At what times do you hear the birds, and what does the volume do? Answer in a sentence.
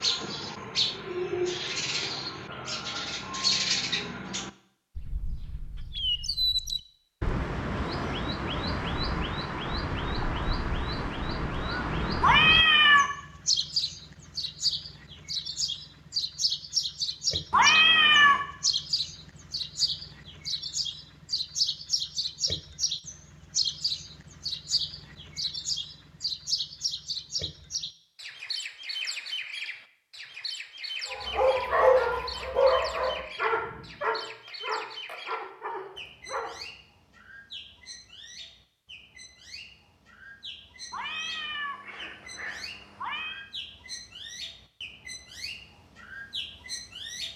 You can hear the birds from 0.0 to 47.3 s, getting quieter.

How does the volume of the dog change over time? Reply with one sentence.
The volume of the dog goes down.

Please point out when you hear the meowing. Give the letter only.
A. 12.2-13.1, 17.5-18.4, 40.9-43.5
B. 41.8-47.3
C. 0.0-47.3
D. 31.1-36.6
A.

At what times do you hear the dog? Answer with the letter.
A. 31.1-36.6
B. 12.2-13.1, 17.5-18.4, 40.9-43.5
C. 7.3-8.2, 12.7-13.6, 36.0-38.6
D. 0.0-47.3
A.